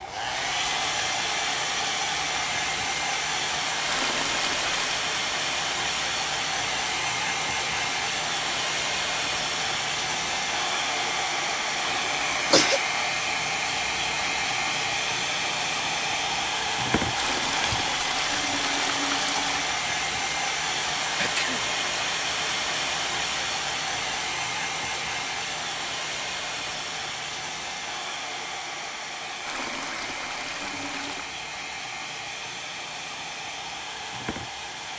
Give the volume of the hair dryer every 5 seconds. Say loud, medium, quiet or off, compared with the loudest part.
loud, loud, loud, loud, loud, medium, medium.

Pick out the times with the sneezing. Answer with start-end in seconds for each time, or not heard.
11.8-12.8, 21.1-21.7.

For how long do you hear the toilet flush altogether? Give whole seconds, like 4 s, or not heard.
6 s.